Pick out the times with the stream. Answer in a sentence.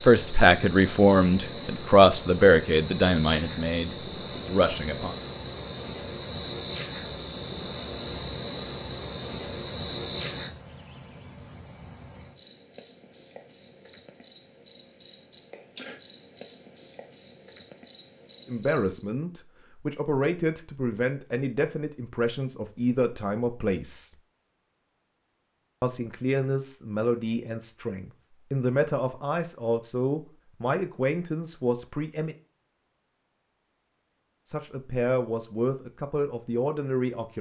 The stream can't be heard in this clip.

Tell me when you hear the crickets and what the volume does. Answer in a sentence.
The crickets can be heard from 0.0 to 19.1 s, getting louder.